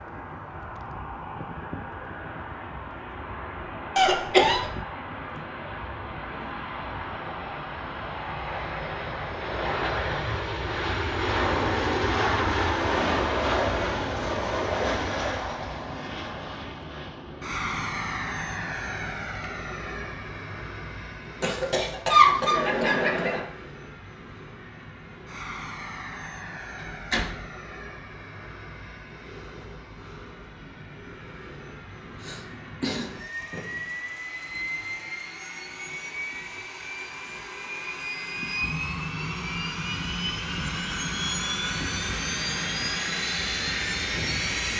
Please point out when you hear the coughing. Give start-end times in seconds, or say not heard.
4.0-4.7, 21.4-23.4, 32.2-33.1.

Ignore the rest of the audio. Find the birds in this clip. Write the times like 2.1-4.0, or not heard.
not heard.